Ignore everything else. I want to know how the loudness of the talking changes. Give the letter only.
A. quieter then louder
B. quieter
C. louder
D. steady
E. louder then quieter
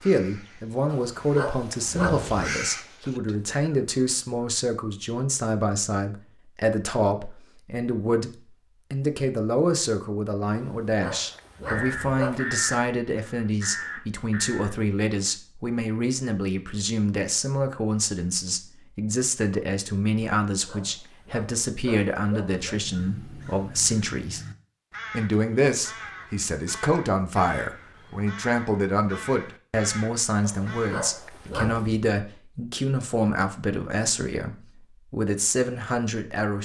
D.